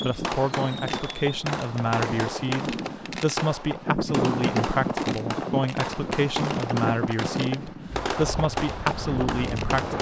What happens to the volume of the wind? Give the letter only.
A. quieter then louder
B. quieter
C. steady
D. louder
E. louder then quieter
E.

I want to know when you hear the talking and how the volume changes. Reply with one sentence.
The talking can be heard from 0.0 to 9.9 s, at a steady volume.